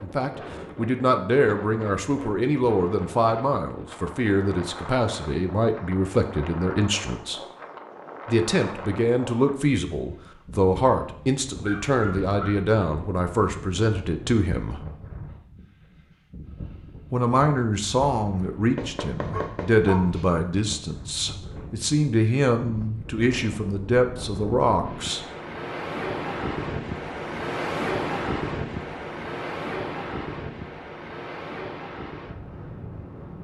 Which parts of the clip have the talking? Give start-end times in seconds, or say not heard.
0.0-7.4, 8.2-14.8, 17.1-25.2.